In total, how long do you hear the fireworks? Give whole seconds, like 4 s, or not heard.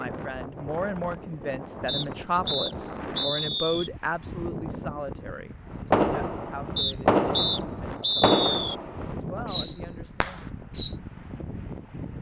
5 s.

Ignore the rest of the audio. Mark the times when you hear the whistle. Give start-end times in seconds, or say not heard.
1.9-3.9, 6.8-8.8.